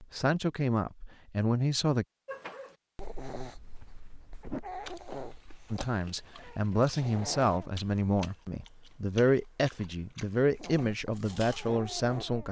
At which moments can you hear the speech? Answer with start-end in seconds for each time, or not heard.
0.0-2.0, 5.7-12.4.